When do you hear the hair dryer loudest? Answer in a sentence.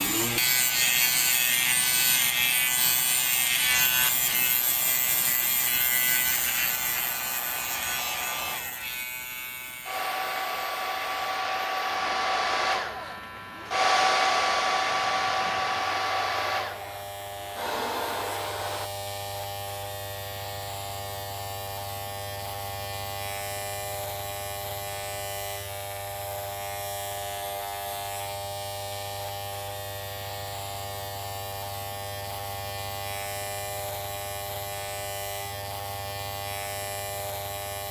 The volume of the hair dryer peaks at 14 seconds.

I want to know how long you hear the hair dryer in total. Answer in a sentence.
You can hear the hair dryer for 19 seconds altogether.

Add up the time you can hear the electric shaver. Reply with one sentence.
You can hear the electric shaver for 38 seconds altogether.